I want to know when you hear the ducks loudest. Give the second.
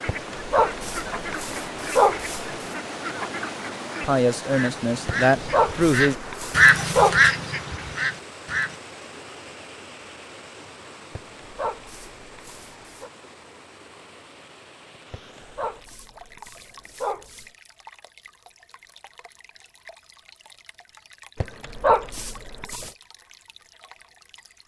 7 s.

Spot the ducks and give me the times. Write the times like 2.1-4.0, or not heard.
0.0-8.8.